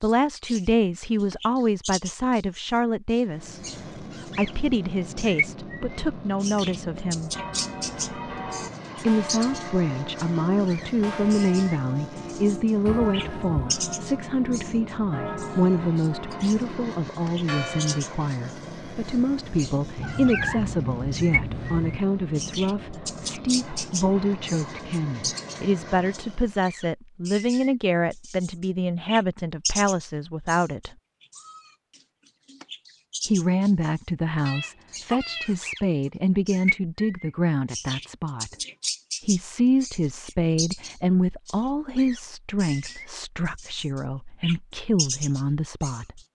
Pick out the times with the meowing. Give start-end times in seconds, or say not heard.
12.8-13.8, 19.9-22.0, 34.5-35.5.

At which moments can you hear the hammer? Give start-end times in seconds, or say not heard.
not heard.